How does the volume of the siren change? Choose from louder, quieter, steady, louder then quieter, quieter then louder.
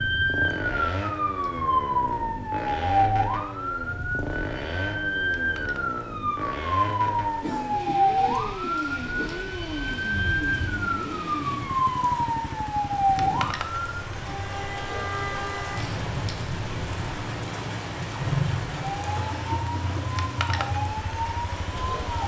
quieter.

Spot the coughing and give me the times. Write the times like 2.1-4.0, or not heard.
7.4-9.4, 19.1-20.1.